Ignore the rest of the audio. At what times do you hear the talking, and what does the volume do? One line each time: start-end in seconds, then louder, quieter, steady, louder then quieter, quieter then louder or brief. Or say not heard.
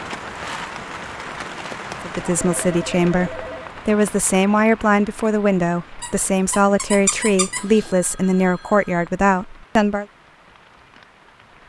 2.0-10.1 steady.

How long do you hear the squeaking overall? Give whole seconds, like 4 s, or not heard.
2 s.